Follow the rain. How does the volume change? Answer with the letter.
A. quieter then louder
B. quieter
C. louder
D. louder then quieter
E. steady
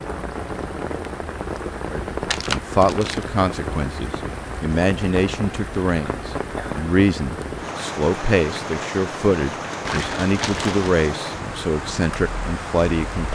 E.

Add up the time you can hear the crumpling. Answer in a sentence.
You can hear the crumpling for 2 seconds altogether.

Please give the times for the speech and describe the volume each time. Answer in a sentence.
The speech can be heard from 1.9 to 13.2 s, at a steady volume.